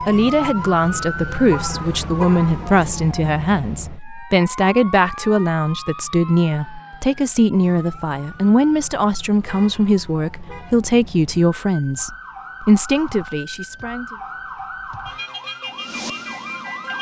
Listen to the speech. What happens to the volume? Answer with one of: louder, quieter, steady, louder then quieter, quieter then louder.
steady.